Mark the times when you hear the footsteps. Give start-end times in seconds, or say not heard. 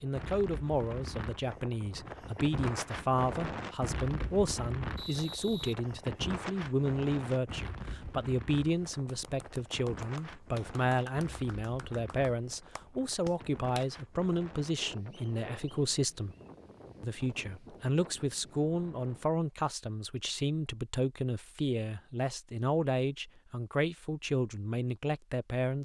not heard.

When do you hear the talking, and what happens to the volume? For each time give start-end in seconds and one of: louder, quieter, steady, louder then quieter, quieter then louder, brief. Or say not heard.
0.0-16.4 steady
17.0-25.8 steady.